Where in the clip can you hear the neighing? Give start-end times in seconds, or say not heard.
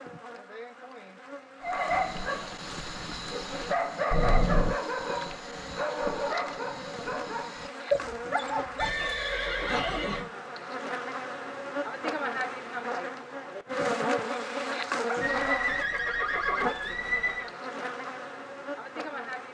4.1-4.8, 8.8-10.2, 15.2-17.5.